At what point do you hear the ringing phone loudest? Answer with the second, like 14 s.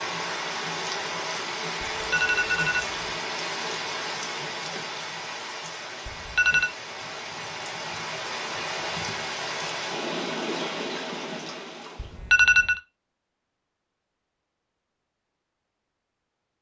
12 s.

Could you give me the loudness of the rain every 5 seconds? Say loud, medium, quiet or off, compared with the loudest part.
loud, loud, loud, off.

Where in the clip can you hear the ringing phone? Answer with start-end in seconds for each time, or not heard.
1.9-3.0, 6.0-6.7, 11.9-12.8.